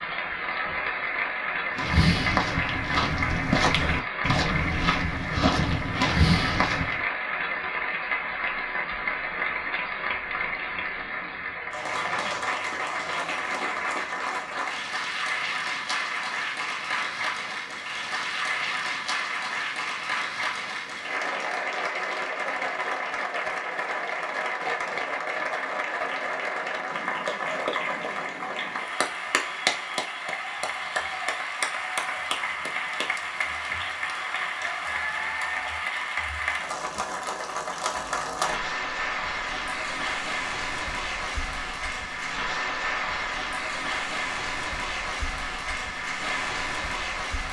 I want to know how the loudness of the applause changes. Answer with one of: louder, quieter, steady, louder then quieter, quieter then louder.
steady.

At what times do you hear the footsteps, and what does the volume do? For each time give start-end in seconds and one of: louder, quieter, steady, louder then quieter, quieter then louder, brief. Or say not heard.
1.8-7.0 steady.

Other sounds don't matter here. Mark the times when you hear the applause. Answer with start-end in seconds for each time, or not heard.
0.0-47.4.